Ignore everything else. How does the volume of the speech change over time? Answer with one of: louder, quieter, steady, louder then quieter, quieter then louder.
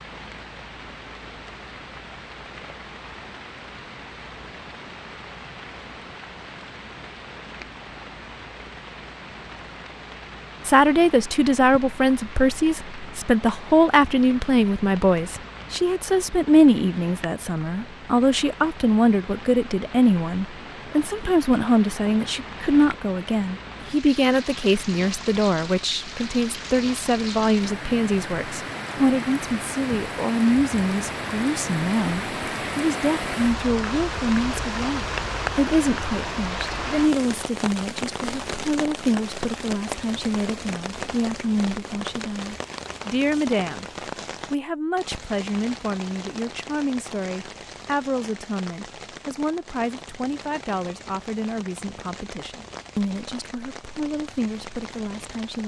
quieter.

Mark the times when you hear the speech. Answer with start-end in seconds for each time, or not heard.
10.7-43.9, 44.5-55.6.